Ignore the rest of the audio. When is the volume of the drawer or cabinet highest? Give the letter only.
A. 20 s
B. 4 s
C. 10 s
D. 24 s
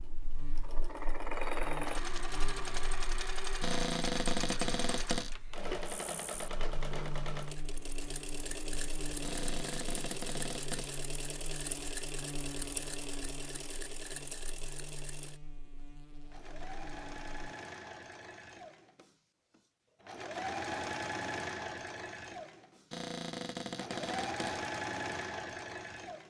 B.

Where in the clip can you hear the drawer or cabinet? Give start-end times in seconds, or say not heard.
3.6-5.3, 9.2-10.9, 22.9-24.6.